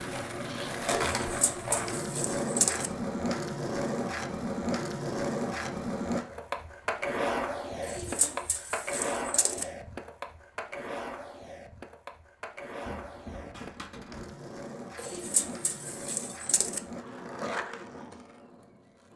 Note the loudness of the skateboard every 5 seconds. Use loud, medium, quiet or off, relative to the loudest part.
loud, loud, medium, medium.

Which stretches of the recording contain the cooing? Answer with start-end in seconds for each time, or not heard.
1.1-2.9, 7.8-9.7, 14.9-16.8.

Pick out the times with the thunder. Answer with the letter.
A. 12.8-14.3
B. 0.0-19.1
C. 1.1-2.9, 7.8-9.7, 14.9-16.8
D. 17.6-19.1
A.